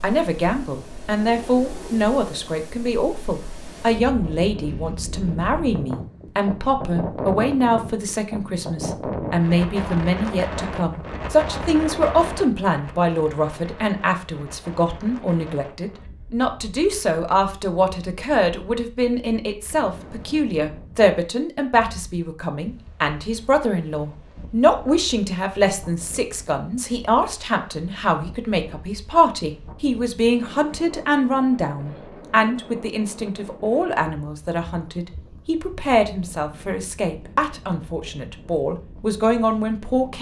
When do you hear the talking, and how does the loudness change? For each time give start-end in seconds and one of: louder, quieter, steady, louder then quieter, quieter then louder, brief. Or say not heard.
0.0-40.1 steady.